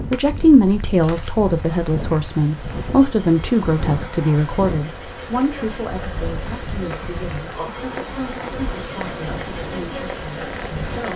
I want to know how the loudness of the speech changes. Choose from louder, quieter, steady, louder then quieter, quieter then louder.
quieter.